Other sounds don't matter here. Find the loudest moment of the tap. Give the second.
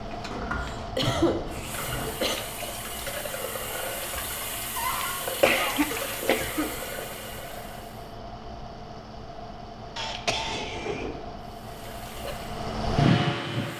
6 s.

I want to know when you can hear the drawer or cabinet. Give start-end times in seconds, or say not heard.
0.3-2.1, 4.8-5.2, 10.4-11.3.